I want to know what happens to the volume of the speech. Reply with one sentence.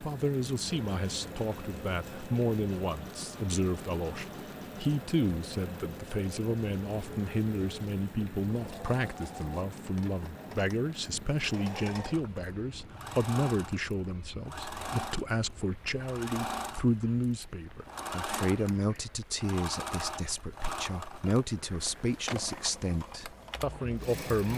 The loudness of the speech stays about the same.